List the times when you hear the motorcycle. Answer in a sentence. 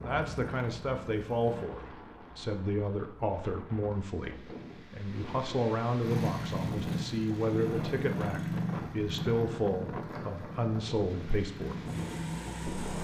You can hear the motorcycle from 0.1 to 1.6 s and from 6.0 to 12.9 s.